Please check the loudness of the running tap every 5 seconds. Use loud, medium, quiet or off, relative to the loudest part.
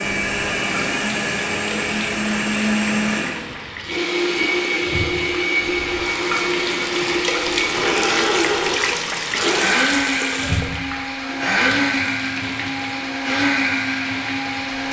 medium, loud, medium.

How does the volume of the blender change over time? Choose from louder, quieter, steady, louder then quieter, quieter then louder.
steady.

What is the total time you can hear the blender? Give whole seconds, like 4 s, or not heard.
15 s.